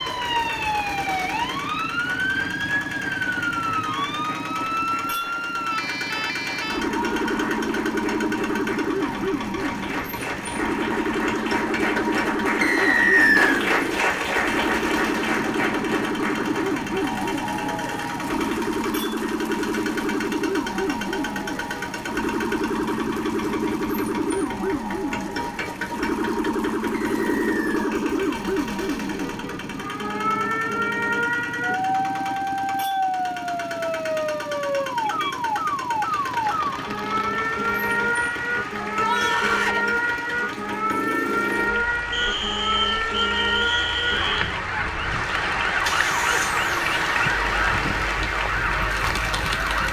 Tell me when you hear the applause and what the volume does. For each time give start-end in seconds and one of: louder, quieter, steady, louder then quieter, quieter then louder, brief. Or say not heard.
0.0-27.8 louder then quieter
36.0-49.8 louder.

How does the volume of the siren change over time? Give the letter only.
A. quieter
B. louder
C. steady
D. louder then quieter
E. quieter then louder
C.